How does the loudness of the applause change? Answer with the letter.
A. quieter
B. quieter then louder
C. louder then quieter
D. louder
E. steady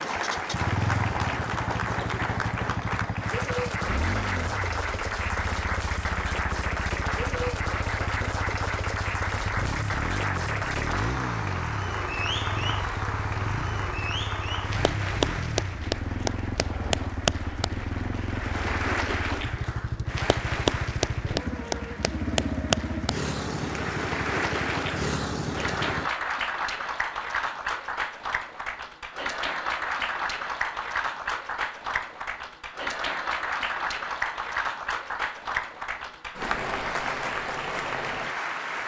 E.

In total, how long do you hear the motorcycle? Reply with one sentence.
You can hear the motorcycle for 26 seconds altogether.